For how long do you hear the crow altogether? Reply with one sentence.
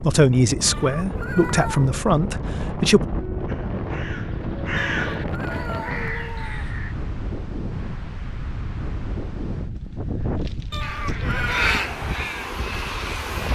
You can hear the crow for 6 seconds altogether.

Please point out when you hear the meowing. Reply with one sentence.
The meowing can be heard from 0.6 to 1.9 s, from 4.9 to 6.7 s and from 10.7 to 11.7 s.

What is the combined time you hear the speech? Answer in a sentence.
You can hear the speech for 3 seconds altogether.